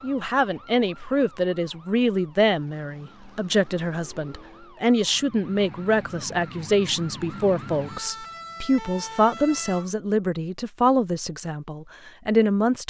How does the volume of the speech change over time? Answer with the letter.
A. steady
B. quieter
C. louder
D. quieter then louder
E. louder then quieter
A.